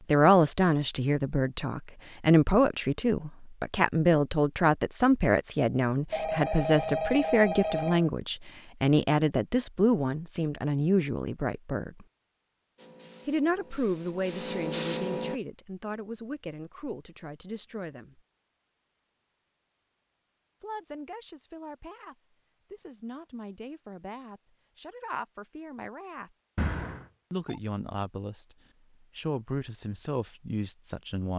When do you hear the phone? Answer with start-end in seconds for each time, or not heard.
6.1-8.1, 26.6-27.6.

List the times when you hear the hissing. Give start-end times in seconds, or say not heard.
12.8-15.4.